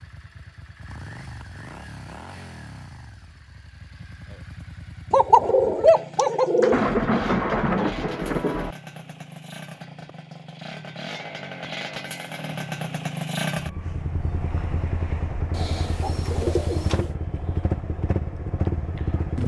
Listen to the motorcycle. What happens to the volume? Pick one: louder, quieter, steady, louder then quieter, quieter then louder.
louder.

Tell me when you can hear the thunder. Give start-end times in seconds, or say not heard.
6.7-8.8.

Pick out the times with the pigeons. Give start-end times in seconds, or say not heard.
5.1-7.0, 15.5-17.1.